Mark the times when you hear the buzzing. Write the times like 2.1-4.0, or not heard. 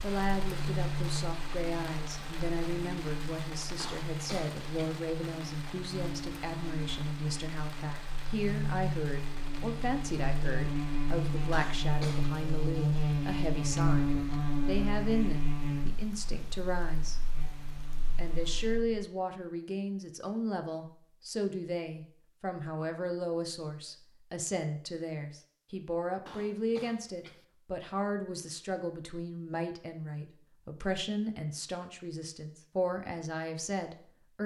0.0-19.0.